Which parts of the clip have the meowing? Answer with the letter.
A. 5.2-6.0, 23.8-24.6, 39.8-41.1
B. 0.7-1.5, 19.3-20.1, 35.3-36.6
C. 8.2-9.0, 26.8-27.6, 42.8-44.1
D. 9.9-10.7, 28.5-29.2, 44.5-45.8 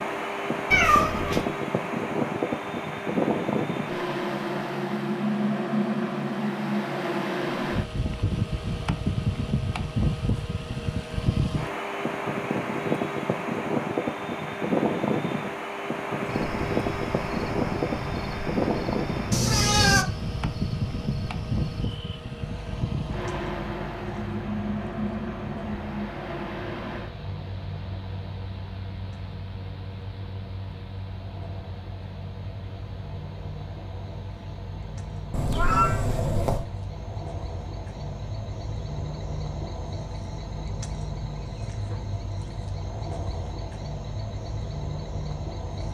B.